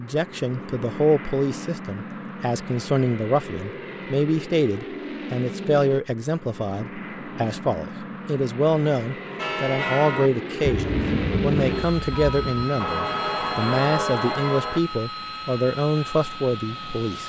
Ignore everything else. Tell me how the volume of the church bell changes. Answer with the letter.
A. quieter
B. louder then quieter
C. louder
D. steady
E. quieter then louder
E.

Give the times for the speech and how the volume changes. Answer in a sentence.
You can hear the speech from 0.0 to 17.2 s, at a steady volume.